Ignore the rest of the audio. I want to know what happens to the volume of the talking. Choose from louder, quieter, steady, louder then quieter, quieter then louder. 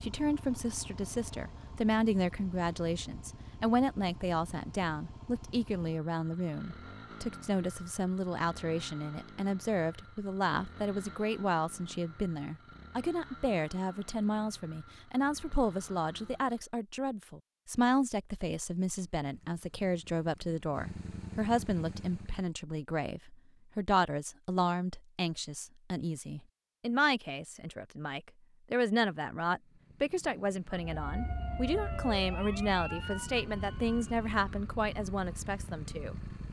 steady.